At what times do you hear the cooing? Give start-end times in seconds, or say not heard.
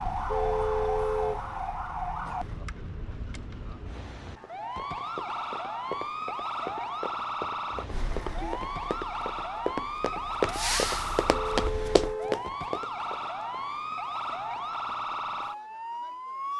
not heard.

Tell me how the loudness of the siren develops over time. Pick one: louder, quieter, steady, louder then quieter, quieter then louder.
steady.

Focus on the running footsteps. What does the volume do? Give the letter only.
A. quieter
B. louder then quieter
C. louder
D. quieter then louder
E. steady
C.